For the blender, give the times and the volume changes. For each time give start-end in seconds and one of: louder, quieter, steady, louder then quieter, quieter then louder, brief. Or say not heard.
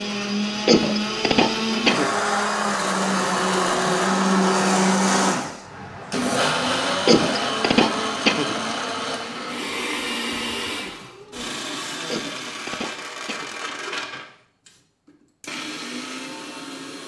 0.0-17.0 quieter.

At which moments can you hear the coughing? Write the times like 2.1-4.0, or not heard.
0.7-2.1, 7.0-8.6, 12.1-13.6.